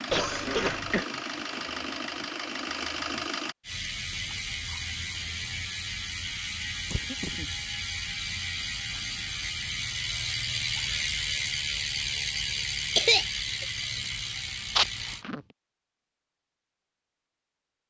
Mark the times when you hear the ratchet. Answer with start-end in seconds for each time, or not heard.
3.6-15.2.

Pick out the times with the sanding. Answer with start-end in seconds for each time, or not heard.
not heard.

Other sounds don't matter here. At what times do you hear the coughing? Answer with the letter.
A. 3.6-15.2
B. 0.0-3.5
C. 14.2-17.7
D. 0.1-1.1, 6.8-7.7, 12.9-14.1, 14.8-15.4
D.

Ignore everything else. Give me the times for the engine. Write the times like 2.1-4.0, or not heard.
0.0-3.5.